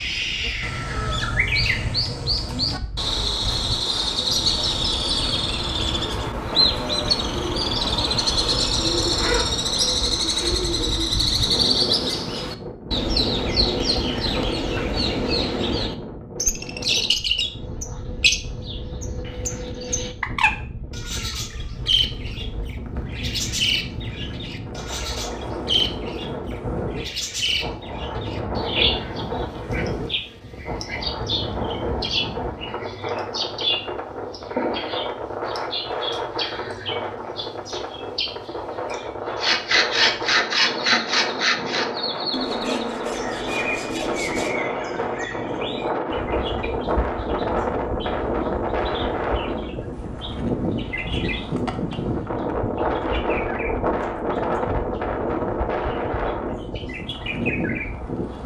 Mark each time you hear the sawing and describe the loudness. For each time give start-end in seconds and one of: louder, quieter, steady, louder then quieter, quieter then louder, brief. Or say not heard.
39.4-44.5 quieter.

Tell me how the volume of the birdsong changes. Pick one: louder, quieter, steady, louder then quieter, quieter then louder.
quieter.